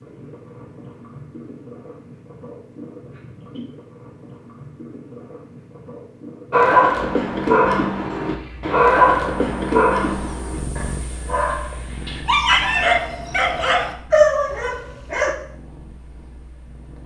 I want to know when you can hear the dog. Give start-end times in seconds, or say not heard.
6.5-15.3.